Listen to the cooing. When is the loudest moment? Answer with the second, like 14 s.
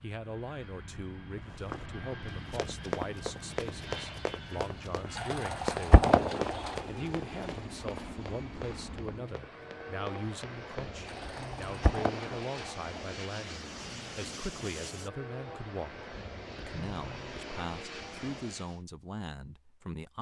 6 s.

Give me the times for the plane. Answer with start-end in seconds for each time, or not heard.
0.0-18.8.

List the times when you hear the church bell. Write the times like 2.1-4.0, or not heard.
not heard.